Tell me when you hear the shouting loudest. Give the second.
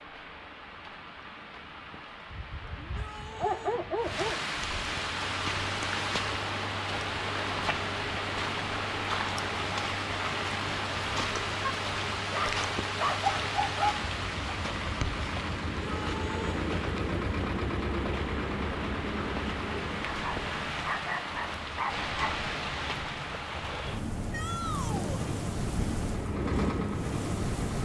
25 s.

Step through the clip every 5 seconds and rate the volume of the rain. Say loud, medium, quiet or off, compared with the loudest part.
medium, loud, loud, medium, loud, loud.